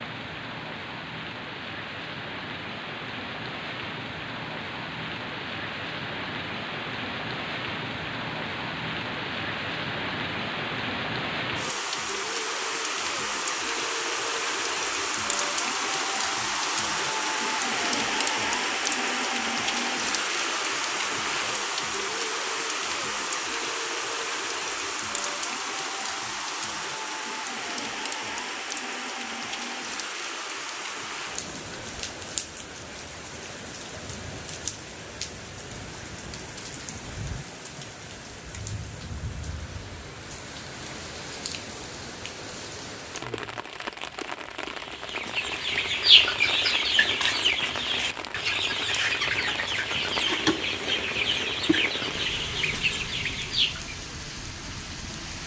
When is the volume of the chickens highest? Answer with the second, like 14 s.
46 s.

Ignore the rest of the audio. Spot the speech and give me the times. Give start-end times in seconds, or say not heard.
not heard.